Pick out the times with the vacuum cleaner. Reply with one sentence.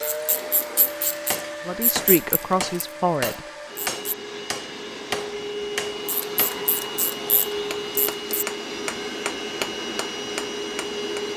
You can hear the vacuum cleaner from 0.0 to 11.3 s.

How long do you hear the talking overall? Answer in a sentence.
The talking can be heard for 2 seconds in total.